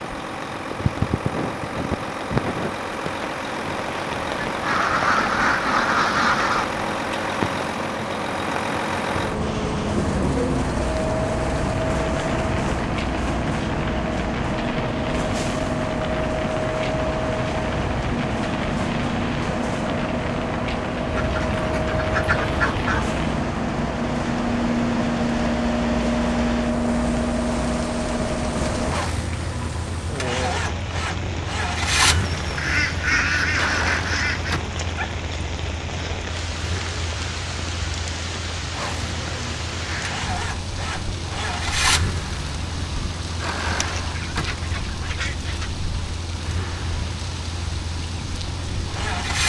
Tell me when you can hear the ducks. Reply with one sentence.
The ducks can be heard from 4.7 to 6.7 s, from 21.1 to 23.1 s, from 32.5 to 34.6 s and from 43.6 to 45.7 s.